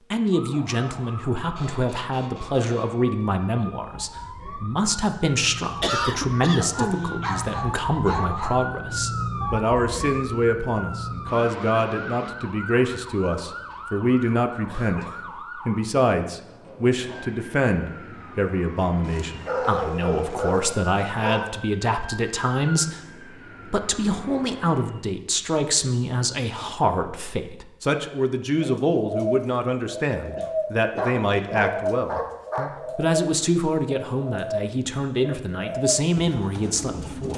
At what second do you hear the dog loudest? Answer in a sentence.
The loudest moment of the dog is at 20 seconds.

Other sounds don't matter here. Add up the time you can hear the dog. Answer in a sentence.
The dog can be heard for 6 seconds in total.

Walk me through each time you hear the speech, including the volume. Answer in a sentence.
The speech can be heard from 0.1 to 37.3 s, at a steady volume.